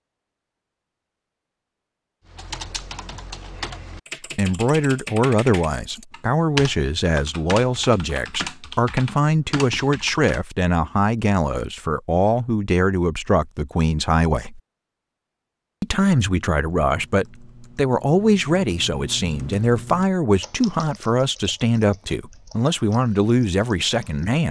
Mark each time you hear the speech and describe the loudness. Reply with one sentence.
You can hear the speech from 4.3 to 14.6 s, at a steady volume; and from 15.8 to 24.4 s, at a steady volume.